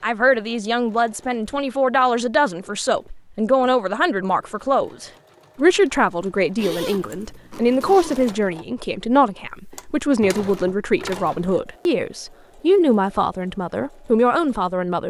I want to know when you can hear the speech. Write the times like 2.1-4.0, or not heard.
0.0-15.0.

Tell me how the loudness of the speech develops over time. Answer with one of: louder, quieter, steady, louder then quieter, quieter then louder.
steady.